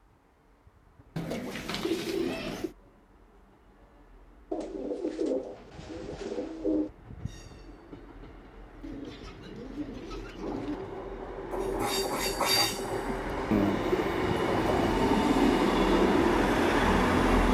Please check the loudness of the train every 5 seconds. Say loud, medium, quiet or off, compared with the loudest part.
quiet, quiet, medium, loud.